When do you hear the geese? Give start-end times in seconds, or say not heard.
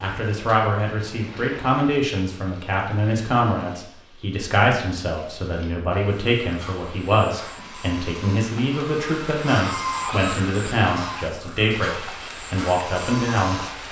6.2-13.8.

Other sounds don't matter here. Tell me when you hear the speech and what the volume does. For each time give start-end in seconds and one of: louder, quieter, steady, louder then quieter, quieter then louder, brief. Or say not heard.
0.0-13.8 steady.